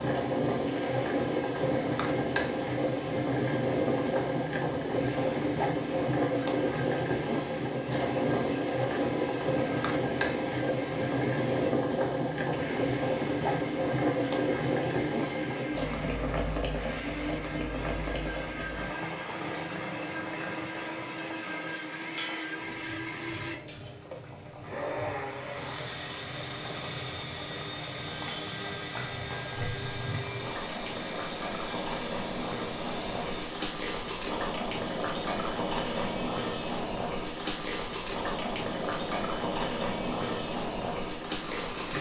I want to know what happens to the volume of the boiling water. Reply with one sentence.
The volume of the boiling water goes down, then up.